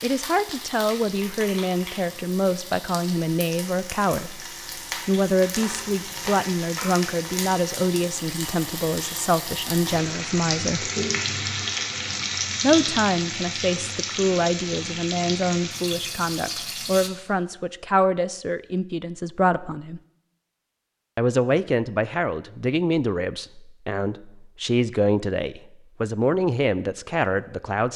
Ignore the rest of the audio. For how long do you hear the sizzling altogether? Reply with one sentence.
The sizzling can be heard for 17 seconds in total.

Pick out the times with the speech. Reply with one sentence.
The speech can be heard from 0.0 to 4.4 s, from 5.0 to 10.9 s, from 12.6 to 20.0 s and from 21.1 to 27.9 s.